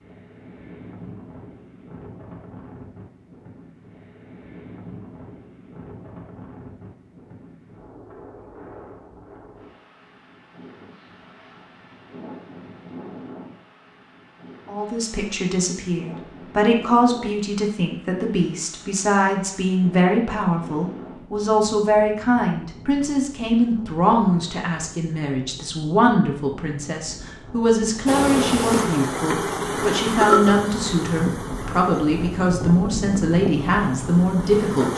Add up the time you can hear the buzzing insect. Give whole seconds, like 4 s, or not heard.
7 s.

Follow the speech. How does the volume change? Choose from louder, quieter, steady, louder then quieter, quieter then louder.
steady.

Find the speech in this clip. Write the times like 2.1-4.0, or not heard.
14.7-34.9.